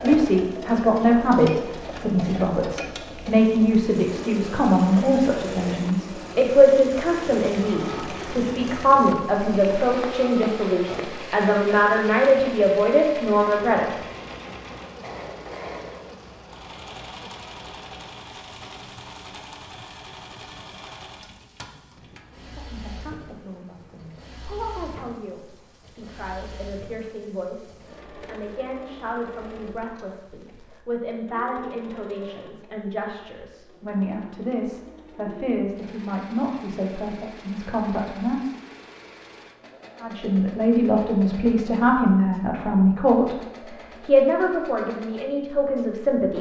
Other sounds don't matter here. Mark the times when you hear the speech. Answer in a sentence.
The speech can be heard from 0.0 to 13.9 s, from 22.4 to 38.5 s, from 40.0 to 43.4 s and from 44.0 to 46.3 s.